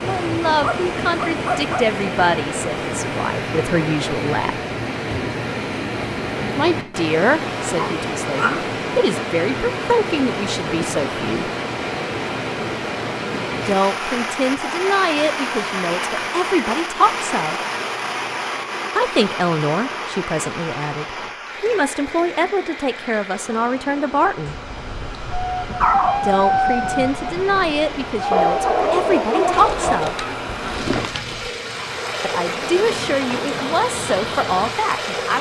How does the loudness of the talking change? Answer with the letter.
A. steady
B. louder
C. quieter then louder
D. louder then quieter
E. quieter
A.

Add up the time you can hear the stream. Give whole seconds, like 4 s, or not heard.
35 s.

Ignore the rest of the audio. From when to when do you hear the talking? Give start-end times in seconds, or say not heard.
0.0-4.6, 6.5-11.5, 13.7-17.6, 18.9-24.6, 26.2-30.1, 32.2-35.3.